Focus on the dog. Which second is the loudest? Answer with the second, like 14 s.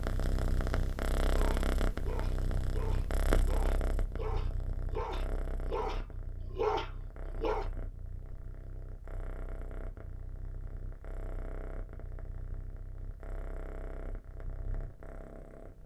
7 s.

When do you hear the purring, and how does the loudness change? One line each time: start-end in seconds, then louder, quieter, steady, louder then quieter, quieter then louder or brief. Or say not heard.
0.0-15.8 quieter.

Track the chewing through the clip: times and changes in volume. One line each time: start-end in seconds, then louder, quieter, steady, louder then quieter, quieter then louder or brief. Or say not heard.
not heard.